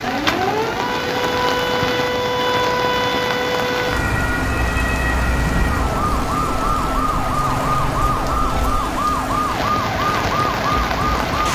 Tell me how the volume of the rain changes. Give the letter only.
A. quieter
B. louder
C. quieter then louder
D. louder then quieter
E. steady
E.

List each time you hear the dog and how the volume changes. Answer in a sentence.
The dog can't be heard in this clip.